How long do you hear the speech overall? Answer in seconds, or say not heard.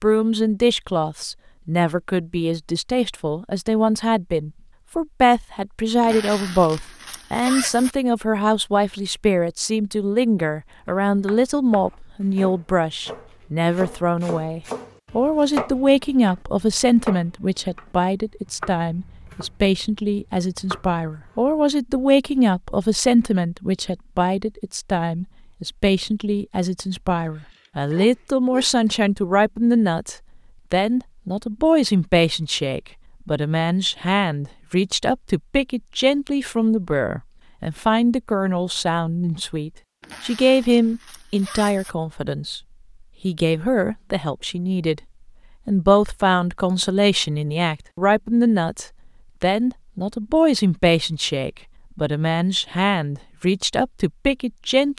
54 s.